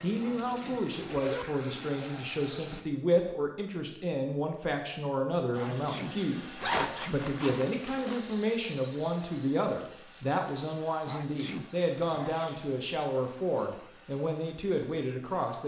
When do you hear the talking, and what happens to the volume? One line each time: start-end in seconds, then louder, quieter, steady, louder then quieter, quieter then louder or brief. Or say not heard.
0.0-15.6 steady.